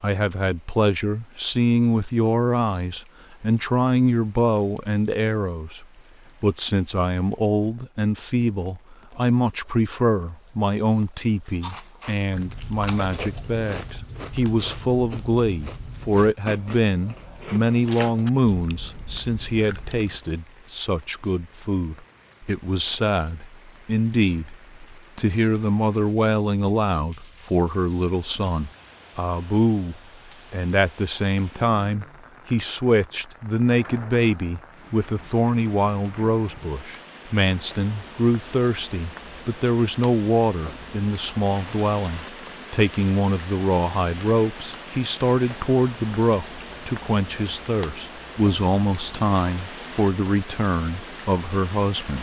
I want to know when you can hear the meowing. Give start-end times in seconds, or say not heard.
not heard.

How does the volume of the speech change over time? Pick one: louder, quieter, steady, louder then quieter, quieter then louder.
steady.